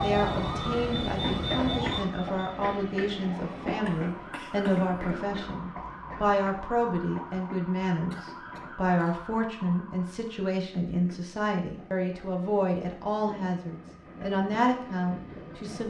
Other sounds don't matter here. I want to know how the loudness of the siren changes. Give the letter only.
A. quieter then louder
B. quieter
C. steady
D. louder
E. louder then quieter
B.